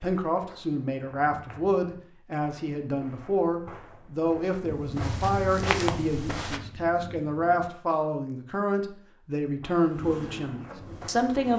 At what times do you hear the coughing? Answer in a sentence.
The coughing can't be heard in this clip.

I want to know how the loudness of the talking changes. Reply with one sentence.
The volume of the talking stays about the same.